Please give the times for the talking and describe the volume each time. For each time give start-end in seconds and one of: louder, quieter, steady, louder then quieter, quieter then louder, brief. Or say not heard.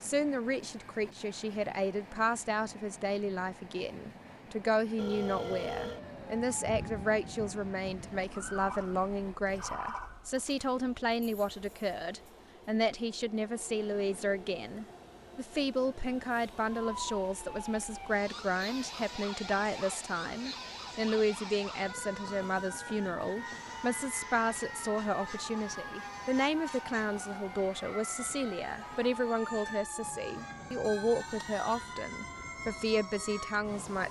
0.0-34.0 steady.